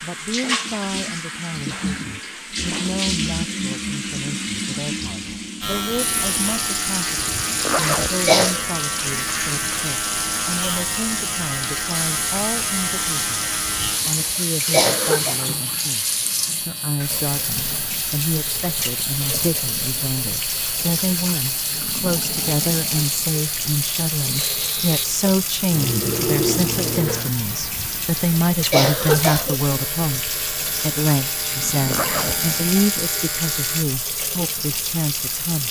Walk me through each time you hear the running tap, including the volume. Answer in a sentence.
You can hear the running tap from 0.0 to 35.6 s, at a steady volume.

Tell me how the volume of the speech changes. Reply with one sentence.
The loudness of the speech goes up.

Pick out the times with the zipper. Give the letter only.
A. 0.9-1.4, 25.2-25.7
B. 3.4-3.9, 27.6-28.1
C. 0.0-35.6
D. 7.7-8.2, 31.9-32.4
D.